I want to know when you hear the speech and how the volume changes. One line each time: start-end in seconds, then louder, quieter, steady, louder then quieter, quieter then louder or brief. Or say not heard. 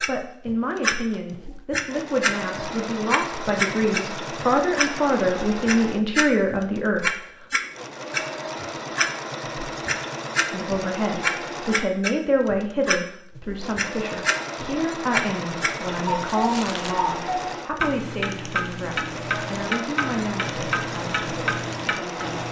0.0-7.2 louder
10.5-22.3 quieter.